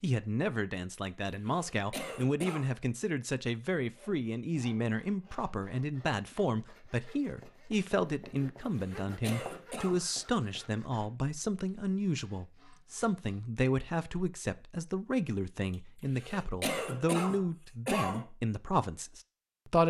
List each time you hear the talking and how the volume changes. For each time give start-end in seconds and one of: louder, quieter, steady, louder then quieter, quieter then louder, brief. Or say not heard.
0.0-19.8 steady.